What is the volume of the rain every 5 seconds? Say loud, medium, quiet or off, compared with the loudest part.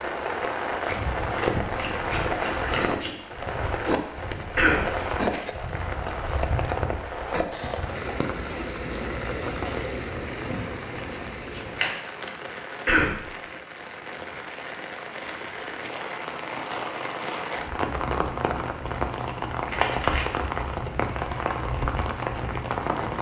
loud, loud, medium, loud, loud.